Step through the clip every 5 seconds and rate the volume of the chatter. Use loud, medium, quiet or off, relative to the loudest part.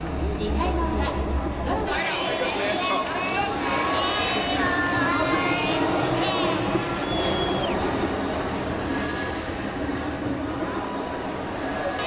loud, loud, medium.